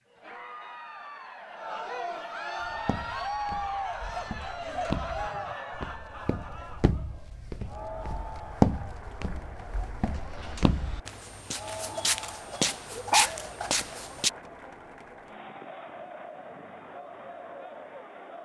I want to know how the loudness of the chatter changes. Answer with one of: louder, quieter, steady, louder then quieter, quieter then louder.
quieter.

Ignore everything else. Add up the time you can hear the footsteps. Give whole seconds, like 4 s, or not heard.
12 s.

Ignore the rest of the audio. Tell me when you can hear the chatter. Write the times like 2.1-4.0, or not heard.
0.1-18.4.